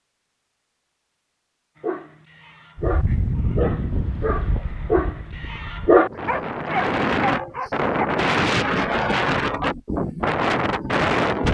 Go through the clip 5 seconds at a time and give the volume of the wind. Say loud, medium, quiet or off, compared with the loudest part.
medium, loud, loud.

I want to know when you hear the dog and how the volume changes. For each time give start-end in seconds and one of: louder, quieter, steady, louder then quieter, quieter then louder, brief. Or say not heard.
1.8-8.1 louder then quieter.